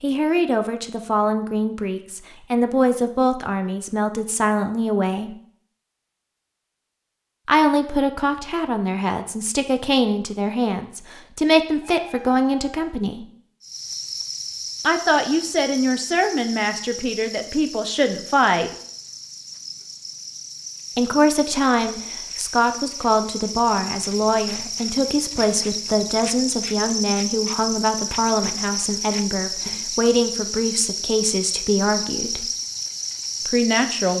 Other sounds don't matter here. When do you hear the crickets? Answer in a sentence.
You can hear the crickets from 13.6 to 34.1 s.